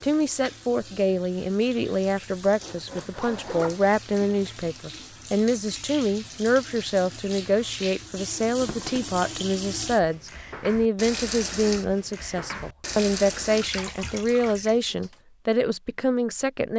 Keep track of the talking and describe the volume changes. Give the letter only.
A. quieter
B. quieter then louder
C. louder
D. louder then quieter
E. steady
E.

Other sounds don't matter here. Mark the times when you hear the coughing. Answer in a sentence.
The coughing can't be heard in this clip.